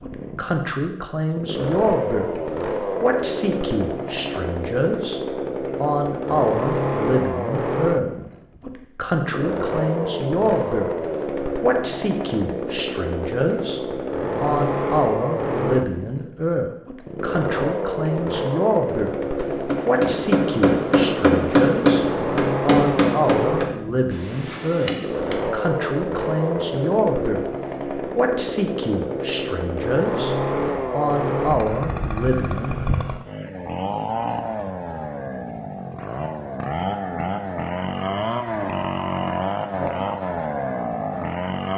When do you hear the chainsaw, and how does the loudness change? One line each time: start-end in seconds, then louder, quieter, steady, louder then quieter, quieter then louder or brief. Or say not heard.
0.0-41.7 steady.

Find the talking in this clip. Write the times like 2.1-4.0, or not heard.
0.0-2.3, 3.0-5.2, 5.8-10.9, 11.6-19.1, 19.9-27.4, 28.1-32.8.